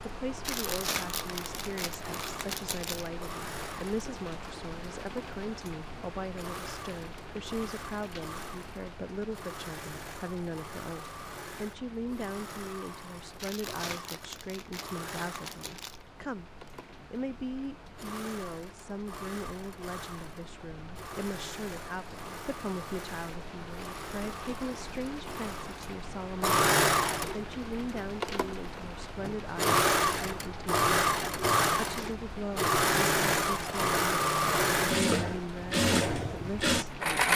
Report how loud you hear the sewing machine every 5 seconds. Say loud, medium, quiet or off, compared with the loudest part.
quiet, quiet, quiet, quiet, quiet, loud, loud, loud.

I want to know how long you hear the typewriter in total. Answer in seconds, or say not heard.
not heard.